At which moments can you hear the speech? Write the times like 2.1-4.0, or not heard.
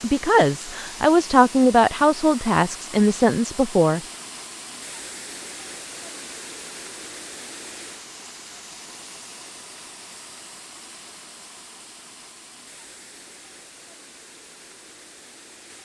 0.0-4.0.